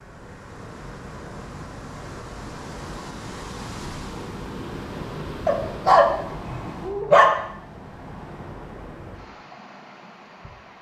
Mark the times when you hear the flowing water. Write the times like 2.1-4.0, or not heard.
0.0-10.7.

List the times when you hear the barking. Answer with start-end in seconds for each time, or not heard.
5.5-7.3.